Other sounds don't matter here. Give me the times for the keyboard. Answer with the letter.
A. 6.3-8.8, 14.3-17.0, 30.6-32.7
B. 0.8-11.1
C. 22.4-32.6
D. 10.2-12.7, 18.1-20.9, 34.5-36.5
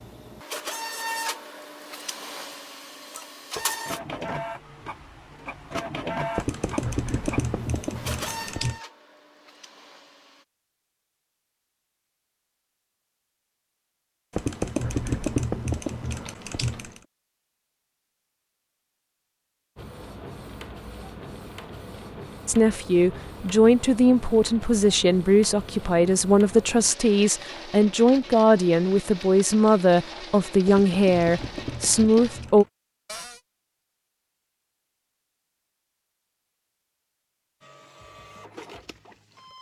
A.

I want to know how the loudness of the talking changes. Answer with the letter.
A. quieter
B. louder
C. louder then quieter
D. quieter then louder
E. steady
E.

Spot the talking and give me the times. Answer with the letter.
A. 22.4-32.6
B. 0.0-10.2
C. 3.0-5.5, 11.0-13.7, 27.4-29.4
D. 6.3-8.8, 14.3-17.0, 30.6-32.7
A.